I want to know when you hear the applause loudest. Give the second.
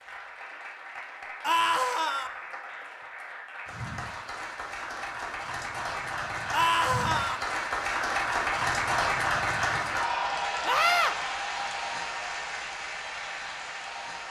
9 s.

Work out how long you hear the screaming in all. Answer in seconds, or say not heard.
2 s.